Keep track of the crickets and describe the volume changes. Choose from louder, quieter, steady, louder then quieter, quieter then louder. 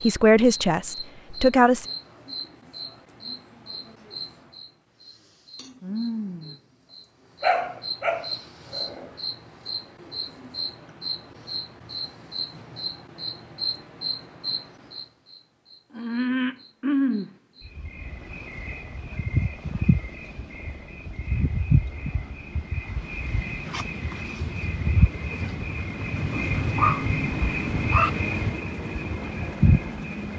louder.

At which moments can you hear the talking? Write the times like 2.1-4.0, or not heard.
0.0-1.9.